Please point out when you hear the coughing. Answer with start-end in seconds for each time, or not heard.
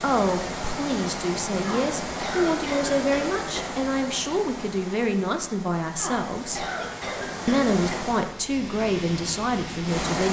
1.6-3.6, 6.0-8.0.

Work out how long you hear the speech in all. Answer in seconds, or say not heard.
9 s.